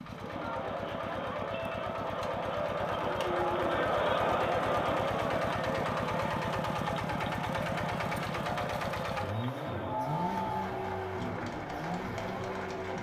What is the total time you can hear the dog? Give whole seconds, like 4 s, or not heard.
not heard.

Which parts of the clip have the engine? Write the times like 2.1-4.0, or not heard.
0.0-12.9.